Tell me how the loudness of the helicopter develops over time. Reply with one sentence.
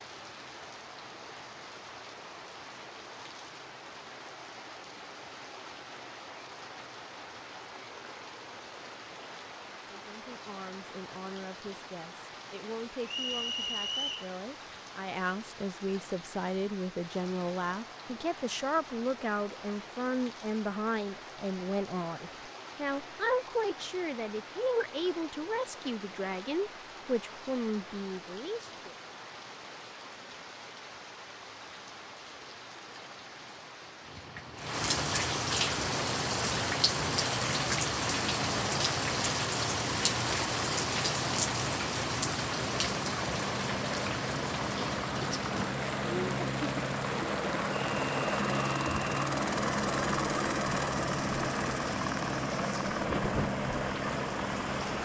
The volume of the helicopter goes up.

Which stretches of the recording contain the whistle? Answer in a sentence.
You can hear the whistle from 13.1 to 14.3 s and from 47.9 to 49.1 s.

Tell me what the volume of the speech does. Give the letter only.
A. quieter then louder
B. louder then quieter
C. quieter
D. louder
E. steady
D.